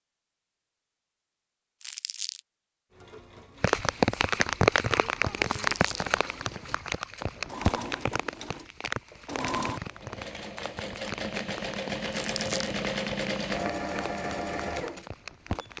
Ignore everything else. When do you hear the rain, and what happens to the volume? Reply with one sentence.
You can hear the rain from 3.6 to 15.7 s, getting quieter.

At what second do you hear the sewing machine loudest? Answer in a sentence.
The loudest moment of the sewing machine is at 13 seconds.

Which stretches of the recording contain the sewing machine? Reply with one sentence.
You can hear the sewing machine from 2.9 to 15.7 s.